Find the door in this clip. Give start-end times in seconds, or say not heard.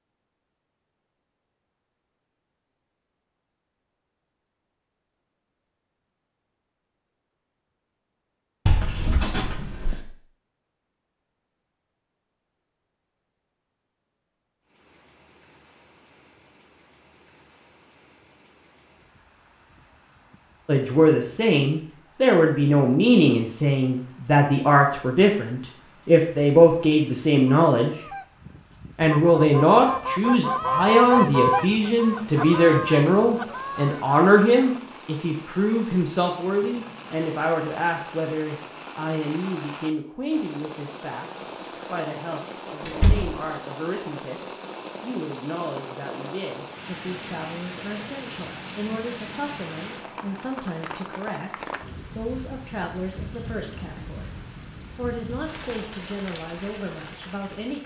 8.7-10.0, 42.9-43.4.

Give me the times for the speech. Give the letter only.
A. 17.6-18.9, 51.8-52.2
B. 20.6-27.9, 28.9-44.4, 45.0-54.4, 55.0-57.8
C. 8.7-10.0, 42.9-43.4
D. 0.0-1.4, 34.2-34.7
B.